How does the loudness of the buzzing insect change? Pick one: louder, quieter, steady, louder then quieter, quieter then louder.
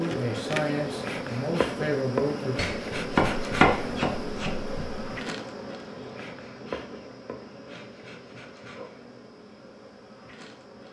quieter.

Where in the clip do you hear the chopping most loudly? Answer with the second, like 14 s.
4 s.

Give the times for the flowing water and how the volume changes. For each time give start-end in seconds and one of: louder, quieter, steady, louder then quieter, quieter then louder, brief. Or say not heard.
not heard.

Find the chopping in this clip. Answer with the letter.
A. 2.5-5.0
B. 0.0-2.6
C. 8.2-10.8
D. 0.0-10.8
A.